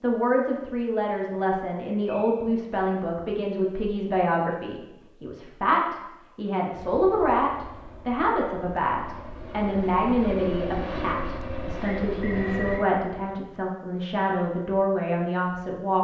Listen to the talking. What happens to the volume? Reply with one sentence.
The volume of the talking stays about the same.